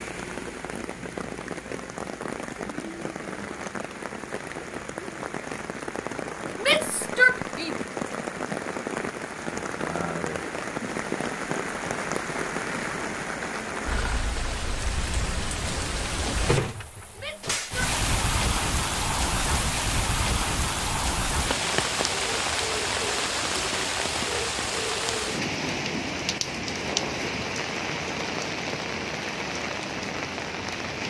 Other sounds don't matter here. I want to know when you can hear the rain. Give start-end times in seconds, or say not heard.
0.0-31.0.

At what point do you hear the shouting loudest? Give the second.
7 s.